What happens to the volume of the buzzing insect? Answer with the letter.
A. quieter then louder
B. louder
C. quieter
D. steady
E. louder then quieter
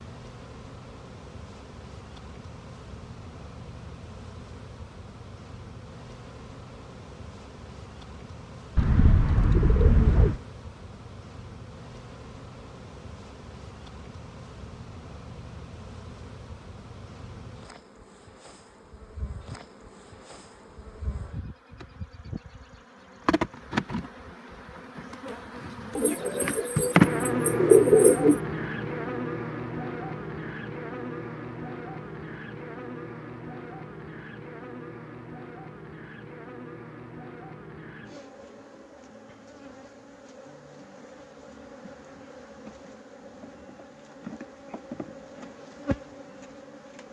E.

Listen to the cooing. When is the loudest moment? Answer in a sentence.
The volume of the cooing peaks at 28 seconds.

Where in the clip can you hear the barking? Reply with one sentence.
You can't hear the barking here.